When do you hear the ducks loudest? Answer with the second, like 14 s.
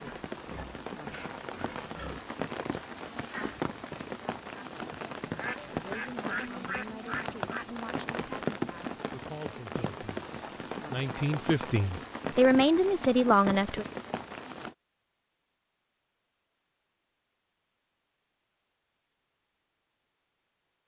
6 s.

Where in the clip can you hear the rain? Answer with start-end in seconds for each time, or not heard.
0.0-14.8.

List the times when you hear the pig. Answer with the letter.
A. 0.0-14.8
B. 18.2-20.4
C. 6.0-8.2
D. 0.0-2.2
D.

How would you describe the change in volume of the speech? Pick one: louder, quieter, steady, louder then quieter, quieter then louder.
louder.